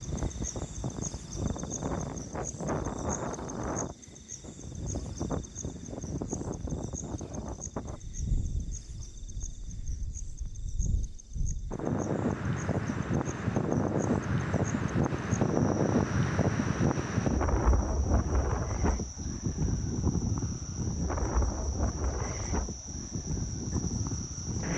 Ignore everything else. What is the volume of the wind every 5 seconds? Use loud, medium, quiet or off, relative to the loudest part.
medium, medium, loud, loud, medium.